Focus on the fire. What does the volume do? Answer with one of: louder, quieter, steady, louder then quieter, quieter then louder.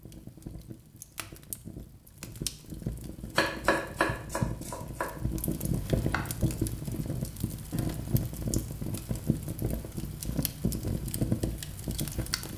louder.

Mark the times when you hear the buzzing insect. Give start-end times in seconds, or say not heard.
not heard.